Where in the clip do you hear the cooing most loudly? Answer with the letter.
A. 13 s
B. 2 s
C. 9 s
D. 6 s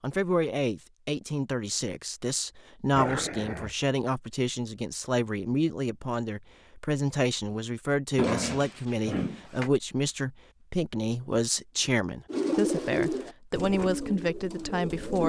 A.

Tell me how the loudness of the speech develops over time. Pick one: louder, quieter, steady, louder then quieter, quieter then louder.
steady.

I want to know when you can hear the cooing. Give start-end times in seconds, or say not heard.
12.3-15.2.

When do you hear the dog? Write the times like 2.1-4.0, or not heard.
2.9-3.8, 8.2-9.7.